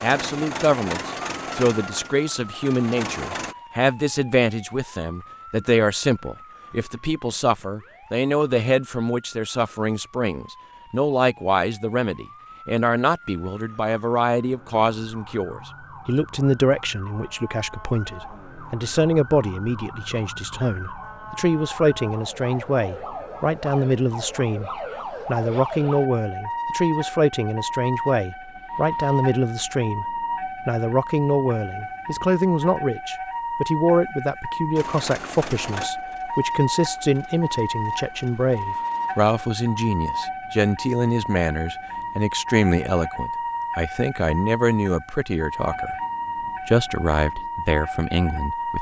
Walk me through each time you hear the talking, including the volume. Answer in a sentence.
You can hear the talking from 0.0 to 46.0 s, at a steady volume; and briefly from 46.6 to 48.7 s.